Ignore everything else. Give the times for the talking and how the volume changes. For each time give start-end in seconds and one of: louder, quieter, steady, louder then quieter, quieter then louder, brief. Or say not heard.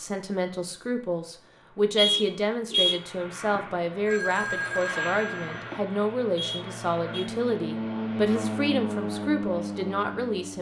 0.0-10.5 steady.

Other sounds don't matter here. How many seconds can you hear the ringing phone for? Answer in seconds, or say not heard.
2 s.